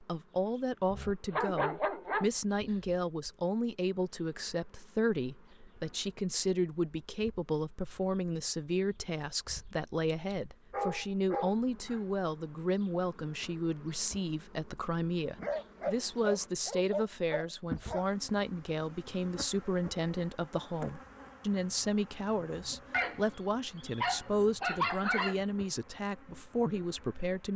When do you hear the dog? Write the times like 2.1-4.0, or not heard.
0.9-2.8, 10.3-11.6, 15.4-18.1, 22.9-25.4.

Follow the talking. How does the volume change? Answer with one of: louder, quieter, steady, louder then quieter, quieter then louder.
steady.